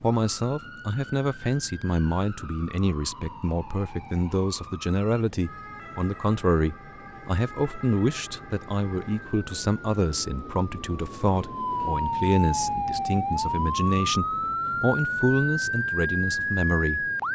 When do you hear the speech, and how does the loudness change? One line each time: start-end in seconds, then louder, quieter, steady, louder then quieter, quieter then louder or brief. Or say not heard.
0.0-17.1 steady.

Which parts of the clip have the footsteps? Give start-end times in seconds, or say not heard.
not heard.